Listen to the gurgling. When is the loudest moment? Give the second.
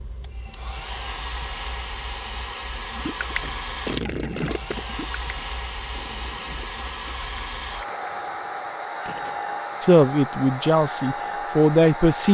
4 s.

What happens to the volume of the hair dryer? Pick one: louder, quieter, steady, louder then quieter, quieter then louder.
steady.